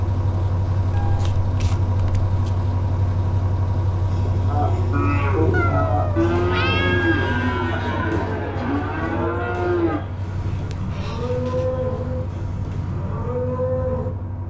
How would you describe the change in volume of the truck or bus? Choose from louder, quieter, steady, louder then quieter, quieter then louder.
quieter.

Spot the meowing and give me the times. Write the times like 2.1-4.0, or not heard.
0.9-2.3, 5.5-7.5, 10.4-11.8.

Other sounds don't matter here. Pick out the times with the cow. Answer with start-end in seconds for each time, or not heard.
4.5-14.1.